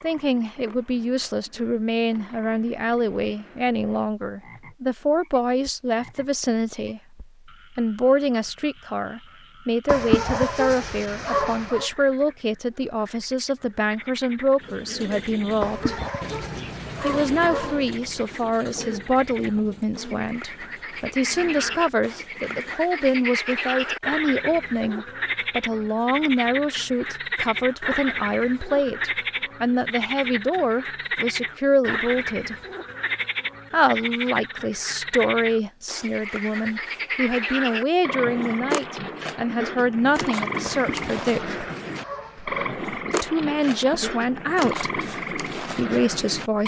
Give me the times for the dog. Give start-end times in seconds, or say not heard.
9.8-11.9, 15.6-17.9, 40.6-42.8.